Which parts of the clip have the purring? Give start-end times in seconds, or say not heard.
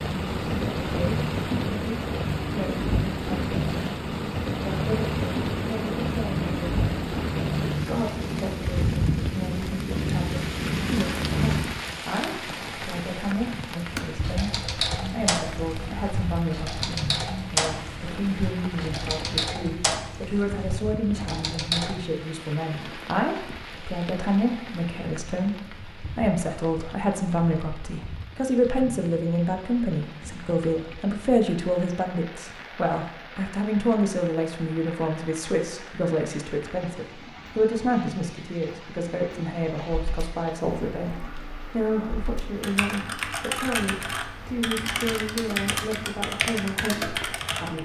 0.0-11.7.